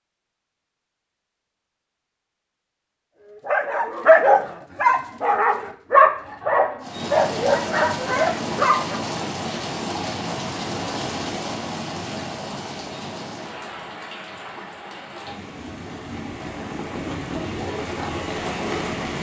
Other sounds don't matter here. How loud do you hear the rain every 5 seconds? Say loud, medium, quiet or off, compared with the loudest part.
off, loud, loud, loud.